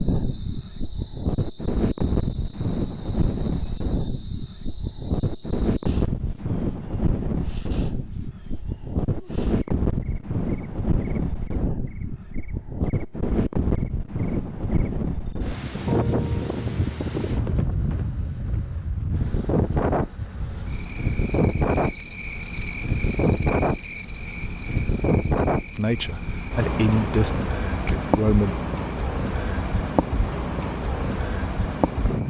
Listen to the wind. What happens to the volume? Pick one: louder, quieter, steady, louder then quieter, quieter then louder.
steady.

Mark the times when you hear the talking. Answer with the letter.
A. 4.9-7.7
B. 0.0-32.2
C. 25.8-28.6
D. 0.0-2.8
C.